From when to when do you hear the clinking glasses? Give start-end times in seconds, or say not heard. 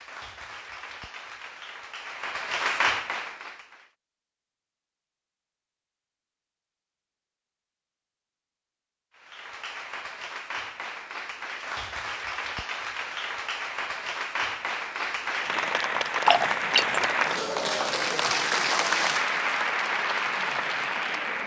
16.2-17.1.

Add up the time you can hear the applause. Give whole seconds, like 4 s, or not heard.
16 s.